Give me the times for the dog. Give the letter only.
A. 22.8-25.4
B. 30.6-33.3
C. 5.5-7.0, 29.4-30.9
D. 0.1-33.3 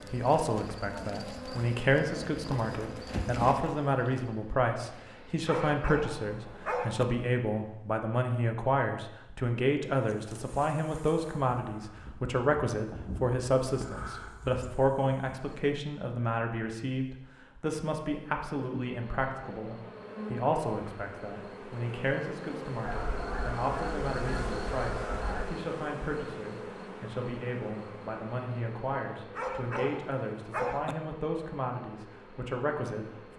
C.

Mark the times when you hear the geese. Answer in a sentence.
You can hear the geese from 22.8 to 25.4 s.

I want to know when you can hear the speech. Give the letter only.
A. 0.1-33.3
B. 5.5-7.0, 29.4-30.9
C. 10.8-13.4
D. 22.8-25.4
A.